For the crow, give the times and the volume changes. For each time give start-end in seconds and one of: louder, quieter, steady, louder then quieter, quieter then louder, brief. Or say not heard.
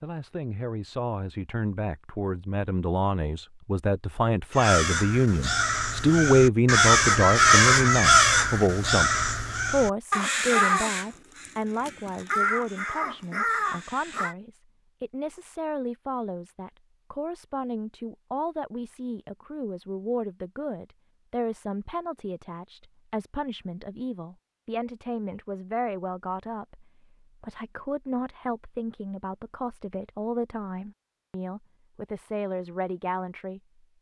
4.5-14.3 louder then quieter.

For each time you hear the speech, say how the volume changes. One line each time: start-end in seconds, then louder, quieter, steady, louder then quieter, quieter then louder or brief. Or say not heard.
0.0-33.9 quieter.